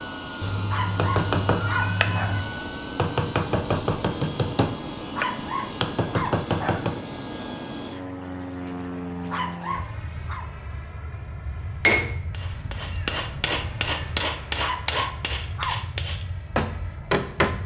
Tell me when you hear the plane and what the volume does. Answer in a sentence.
You can hear the plane from 0.0 to 17.6 s, getting quieter.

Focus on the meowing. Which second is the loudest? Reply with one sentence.
The loudest moment of the meowing is at 2 seconds.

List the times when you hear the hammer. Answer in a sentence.
The hammer can be heard from 0.8 to 7.0 s and from 11.8 to 17.6 s.